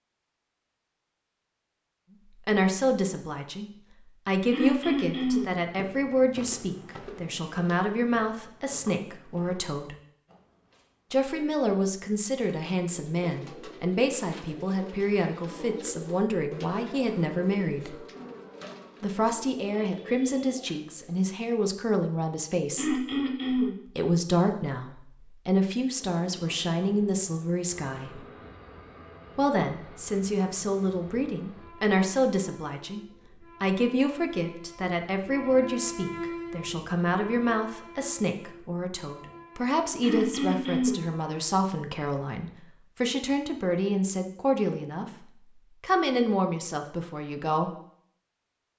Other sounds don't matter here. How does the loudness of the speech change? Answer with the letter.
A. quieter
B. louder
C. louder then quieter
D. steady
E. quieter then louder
D.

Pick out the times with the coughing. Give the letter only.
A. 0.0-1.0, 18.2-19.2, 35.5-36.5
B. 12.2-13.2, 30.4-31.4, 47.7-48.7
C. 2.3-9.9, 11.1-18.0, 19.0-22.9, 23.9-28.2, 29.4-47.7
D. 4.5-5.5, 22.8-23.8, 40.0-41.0
D.